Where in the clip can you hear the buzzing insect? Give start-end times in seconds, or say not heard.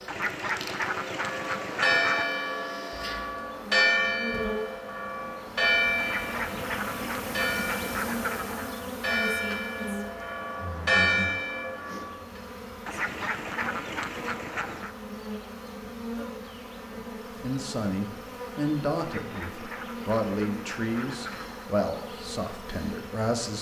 0.0-23.5.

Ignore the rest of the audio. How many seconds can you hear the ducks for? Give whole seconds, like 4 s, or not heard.
10 s.